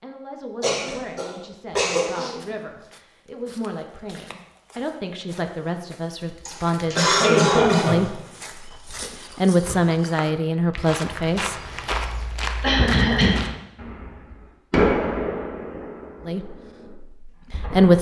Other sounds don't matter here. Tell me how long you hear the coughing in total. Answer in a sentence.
The coughing can be heard for 4 seconds in total.